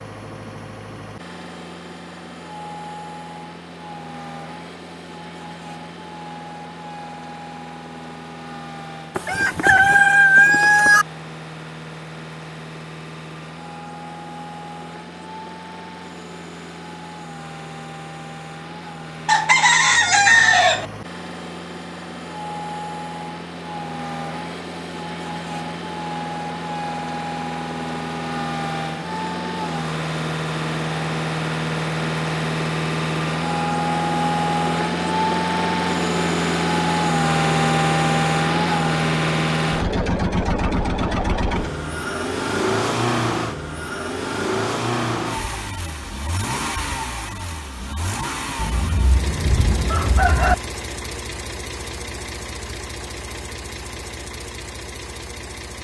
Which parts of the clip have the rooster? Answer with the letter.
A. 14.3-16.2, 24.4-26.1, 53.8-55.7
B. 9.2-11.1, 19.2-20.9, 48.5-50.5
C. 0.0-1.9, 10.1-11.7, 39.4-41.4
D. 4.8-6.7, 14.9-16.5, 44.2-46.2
B.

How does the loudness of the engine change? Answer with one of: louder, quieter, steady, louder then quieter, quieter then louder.
louder then quieter.